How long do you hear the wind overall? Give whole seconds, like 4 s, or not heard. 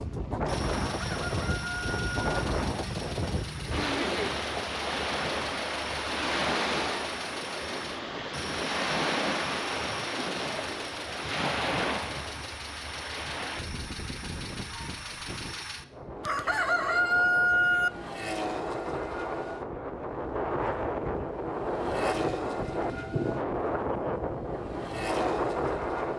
26 s.